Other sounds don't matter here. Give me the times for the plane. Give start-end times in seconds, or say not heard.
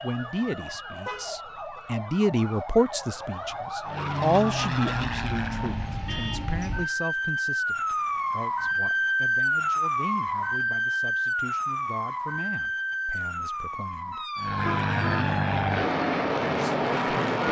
3.9-6.0, 14.3-17.4.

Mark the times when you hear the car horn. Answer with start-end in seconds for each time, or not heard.
1.1-1.8, 14.5-15.2.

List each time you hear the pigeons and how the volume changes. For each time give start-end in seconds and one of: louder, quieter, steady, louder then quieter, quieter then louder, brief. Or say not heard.
not heard.